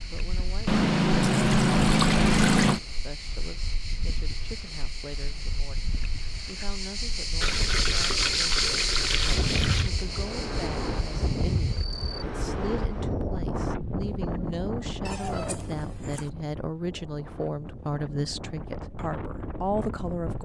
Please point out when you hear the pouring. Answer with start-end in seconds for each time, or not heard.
0.7-2.8, 7.4-9.9, 15.1-16.3.